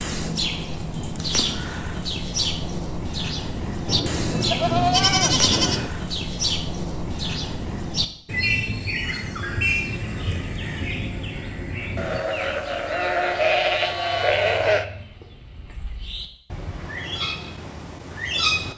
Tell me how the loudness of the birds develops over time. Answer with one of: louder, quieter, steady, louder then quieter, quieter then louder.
quieter.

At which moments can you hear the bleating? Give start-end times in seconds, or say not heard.
3.9-5.9, 11.9-14.8.